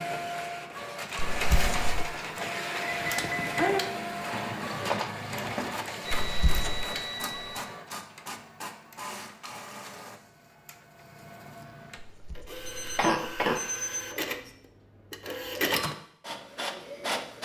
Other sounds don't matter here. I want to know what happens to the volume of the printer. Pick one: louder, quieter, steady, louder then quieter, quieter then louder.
quieter then louder.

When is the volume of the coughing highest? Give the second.
13 s.